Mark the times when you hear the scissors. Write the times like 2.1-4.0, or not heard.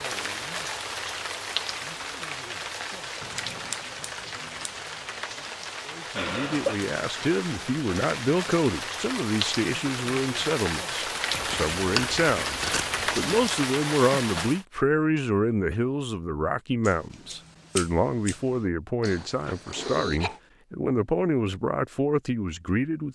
3.2-4.8, 11.3-13.3, 16.9-18.7.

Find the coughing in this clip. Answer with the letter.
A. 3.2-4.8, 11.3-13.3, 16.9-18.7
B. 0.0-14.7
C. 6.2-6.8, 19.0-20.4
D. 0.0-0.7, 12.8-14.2
C.